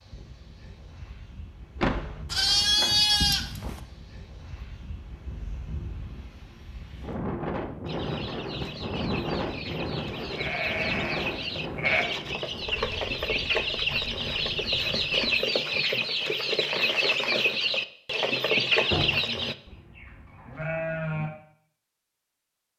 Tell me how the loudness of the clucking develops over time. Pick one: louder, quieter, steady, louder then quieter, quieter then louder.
louder.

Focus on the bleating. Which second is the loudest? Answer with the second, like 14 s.
3 s.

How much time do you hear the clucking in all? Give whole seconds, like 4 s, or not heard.
12 s.